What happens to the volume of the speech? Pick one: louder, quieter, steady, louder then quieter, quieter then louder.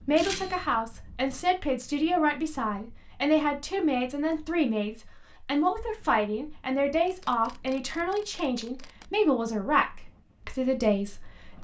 steady.